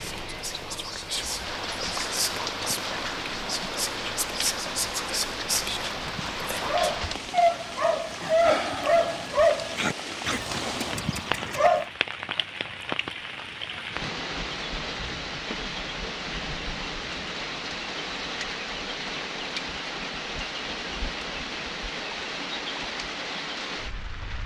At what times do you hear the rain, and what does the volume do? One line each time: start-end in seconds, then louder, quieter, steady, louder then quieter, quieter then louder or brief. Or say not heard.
0.0-24.4 steady.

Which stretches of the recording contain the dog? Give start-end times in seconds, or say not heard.
5.7-11.8.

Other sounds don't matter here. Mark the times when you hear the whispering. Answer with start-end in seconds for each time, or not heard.
0.0-7.0.